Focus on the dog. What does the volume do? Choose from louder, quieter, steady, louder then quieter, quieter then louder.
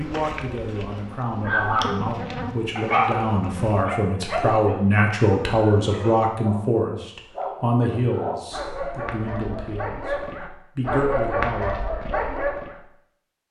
quieter then louder.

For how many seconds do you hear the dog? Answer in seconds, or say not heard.
11 s.